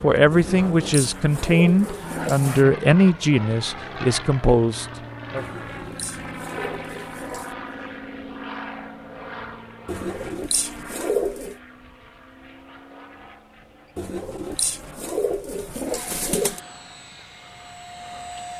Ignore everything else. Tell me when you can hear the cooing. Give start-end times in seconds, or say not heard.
0.3-2.6, 5.3-7.5, 9.8-11.6, 13.9-16.6.